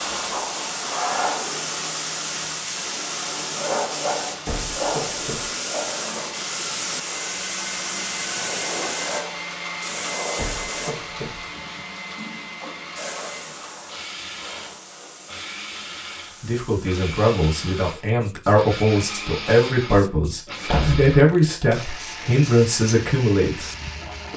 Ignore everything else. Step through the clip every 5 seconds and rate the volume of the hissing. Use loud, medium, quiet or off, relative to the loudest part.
loud, loud, medium, quiet, quiet.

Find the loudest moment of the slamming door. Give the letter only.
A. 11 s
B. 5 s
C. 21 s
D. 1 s
C.